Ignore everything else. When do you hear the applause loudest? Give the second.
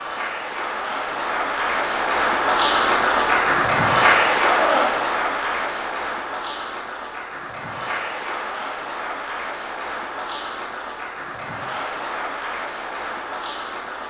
4 s.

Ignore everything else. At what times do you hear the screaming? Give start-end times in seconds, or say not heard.
4.5-5.0.